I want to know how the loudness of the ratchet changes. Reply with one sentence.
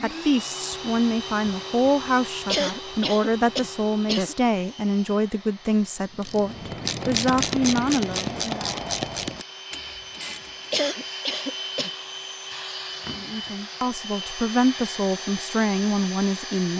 The volume of the ratchet goes down.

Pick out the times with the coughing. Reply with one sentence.
The coughing can be heard from 2.5 to 4.3 s and from 10.7 to 11.9 s.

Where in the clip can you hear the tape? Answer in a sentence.
You can't hear the tape here.